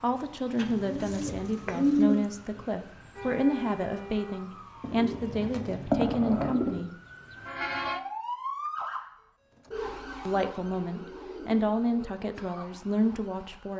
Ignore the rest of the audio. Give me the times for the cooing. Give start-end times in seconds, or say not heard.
0.6-2.1, 4.8-6.8, 9.7-12.2.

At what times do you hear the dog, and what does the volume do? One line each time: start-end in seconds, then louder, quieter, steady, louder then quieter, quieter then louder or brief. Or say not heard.
not heard.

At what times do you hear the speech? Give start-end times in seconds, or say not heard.
0.0-6.9, 10.2-13.7.